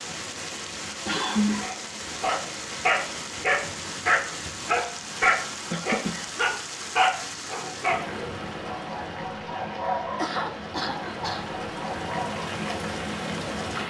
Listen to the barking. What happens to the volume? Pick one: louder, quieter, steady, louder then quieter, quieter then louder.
quieter.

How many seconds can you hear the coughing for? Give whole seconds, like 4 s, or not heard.
3 s.